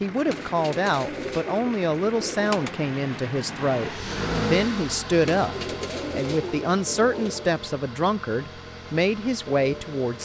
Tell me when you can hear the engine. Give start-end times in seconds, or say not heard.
0.0-10.2.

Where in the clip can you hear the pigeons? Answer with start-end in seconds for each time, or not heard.
0.2-2.8, 5.2-7.5.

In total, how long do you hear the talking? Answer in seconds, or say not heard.
10 s.